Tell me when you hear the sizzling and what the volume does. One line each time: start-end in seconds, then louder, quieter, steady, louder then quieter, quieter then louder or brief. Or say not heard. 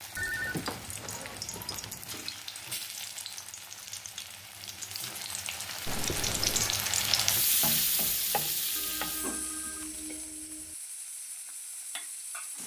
0.0-12.6 louder then quieter.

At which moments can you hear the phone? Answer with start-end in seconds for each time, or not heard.
0.1-2.4, 5.8-6.8, 8.8-10.8.